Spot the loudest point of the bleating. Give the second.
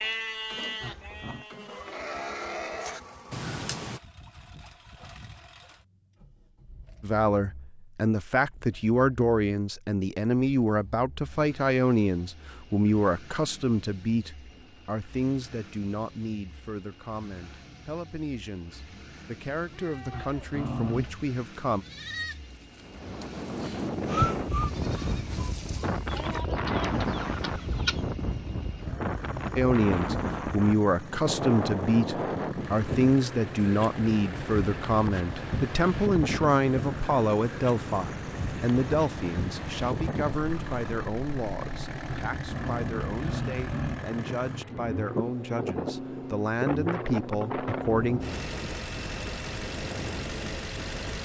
24 s.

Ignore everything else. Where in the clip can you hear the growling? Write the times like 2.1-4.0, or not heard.
0.8-1.4, 20.1-21.1, 42.0-44.0.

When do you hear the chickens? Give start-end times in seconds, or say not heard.
26.1-28.0.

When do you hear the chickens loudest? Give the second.
28 s.